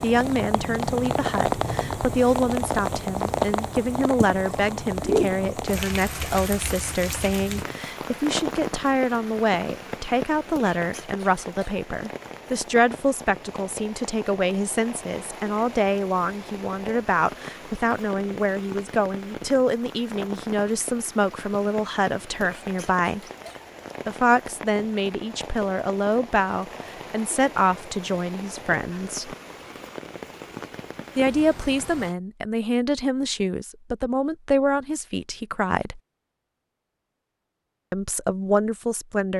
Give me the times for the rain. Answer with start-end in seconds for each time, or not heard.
0.0-32.1.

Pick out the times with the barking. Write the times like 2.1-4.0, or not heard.
not heard.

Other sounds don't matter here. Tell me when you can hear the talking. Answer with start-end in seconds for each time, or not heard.
0.0-23.2, 24.1-29.4, 31.1-36.0, 37.9-39.3.